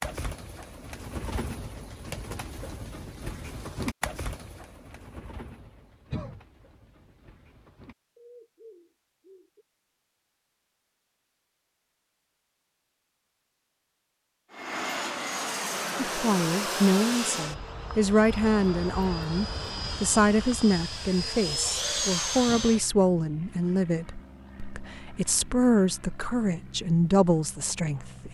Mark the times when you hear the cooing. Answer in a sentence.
The cooing can be heard from 0.0 to 9.7 s.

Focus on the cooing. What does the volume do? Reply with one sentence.
The volume of the cooing goes down, then up.